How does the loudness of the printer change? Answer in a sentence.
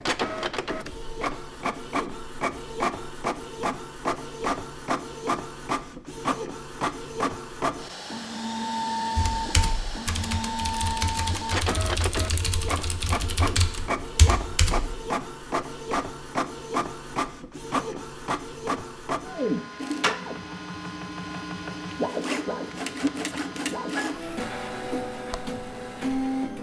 The loudness of the printer stays about the same.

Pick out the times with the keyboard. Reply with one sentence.
The keyboard can be heard from 9.2 to 15.0 s.